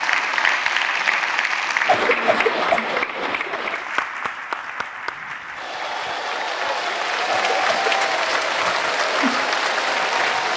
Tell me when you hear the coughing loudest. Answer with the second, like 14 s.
3 s.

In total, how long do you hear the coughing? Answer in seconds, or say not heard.
2 s.